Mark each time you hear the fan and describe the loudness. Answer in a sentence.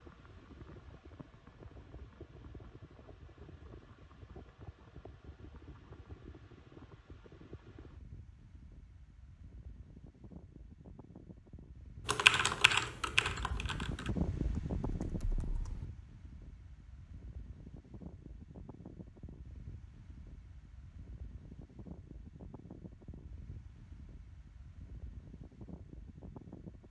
The fan can be heard from 0.0 to 26.8 s, getting louder then quieter.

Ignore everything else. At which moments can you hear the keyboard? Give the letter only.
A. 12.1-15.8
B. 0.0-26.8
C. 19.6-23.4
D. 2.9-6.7
A.